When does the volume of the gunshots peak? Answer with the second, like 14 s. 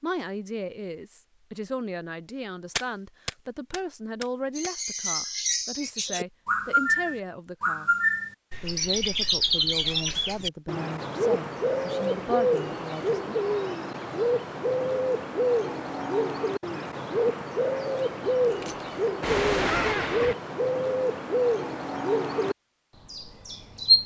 20 s.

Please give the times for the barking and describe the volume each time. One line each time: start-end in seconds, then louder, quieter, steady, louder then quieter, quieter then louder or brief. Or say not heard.
not heard.